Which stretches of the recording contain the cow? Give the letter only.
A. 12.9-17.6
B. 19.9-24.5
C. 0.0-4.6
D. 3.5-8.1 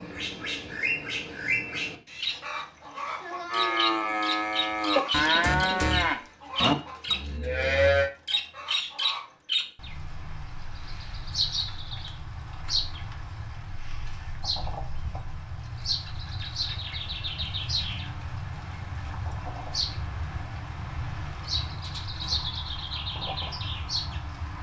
D.